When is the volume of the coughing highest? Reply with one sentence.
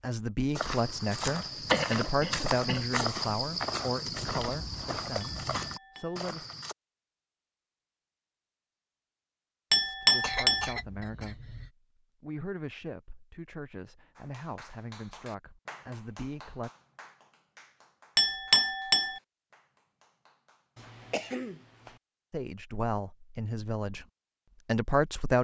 The volume of the coughing peaks at 2 seconds.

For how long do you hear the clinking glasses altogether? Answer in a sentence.
You can hear the clinking glasses for 3 seconds altogether.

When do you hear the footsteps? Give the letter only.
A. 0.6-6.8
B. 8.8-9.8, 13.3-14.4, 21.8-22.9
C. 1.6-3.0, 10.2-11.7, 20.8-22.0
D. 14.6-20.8
A.